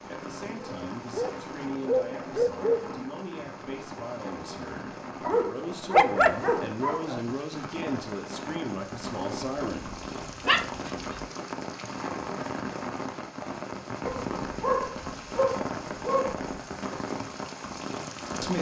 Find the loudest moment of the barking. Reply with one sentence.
The loudest moment of the barking is at 6 seconds.